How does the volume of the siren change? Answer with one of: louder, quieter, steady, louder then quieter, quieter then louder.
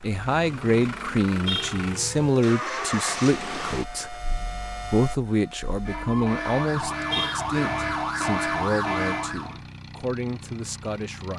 louder.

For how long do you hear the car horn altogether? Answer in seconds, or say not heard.
2 s.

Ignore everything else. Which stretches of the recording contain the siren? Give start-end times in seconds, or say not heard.
0.0-9.6.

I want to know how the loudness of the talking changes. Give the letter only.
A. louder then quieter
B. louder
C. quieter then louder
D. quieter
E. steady
D.